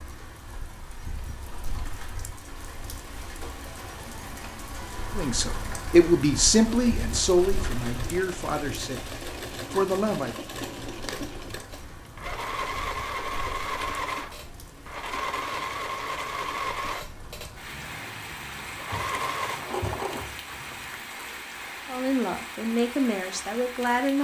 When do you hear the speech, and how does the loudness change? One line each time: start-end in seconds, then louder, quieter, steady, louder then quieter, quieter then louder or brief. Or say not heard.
5.2-10.3 quieter then louder
21.9-24.1 brief.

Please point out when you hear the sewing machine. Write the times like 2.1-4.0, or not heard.
6.5-20.2.